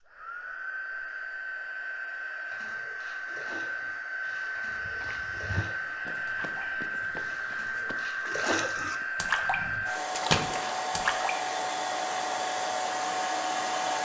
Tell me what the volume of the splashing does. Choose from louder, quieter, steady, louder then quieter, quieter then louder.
louder.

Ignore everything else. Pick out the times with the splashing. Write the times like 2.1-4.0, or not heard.
2.5-11.3.